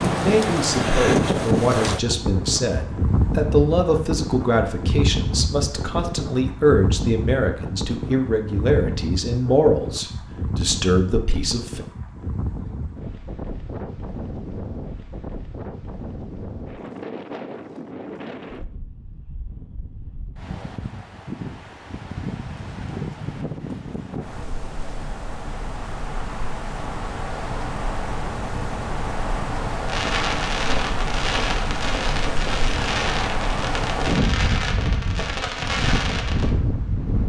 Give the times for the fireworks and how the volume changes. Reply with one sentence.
The fireworks can be heard from 29.9 to 36.5 s, at a steady volume.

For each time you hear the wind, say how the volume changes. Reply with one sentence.
The wind can be heard from 0.0 to 37.2 s, getting quieter then louder.